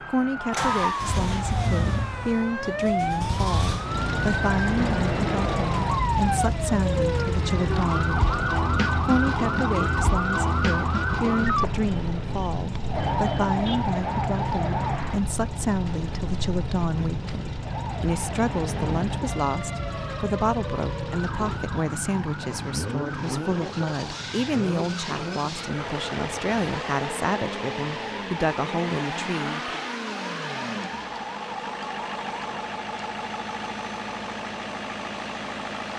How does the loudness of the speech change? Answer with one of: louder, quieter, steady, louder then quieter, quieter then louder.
steady.